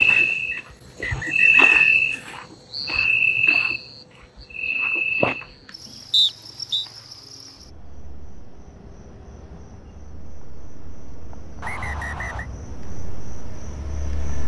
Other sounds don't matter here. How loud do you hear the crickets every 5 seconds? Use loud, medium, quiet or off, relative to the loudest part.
loud, quiet, quiet.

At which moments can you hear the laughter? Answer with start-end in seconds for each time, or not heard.
not heard.